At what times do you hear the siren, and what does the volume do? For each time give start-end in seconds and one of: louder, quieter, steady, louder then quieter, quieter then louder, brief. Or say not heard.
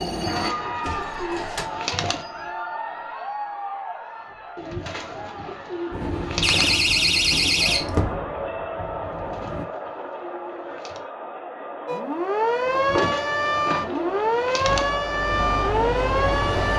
11.8-16.7 steady.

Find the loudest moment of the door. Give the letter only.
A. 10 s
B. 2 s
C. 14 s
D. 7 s
D.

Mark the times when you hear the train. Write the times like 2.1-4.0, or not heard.
0.0-2.5, 5.9-9.7, 14.7-16.7.